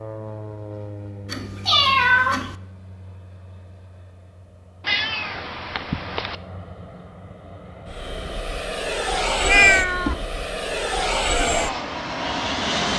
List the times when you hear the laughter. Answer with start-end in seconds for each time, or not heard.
not heard.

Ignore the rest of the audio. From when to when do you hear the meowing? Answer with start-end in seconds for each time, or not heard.
1.3-2.5, 4.8-6.3, 9.4-10.2.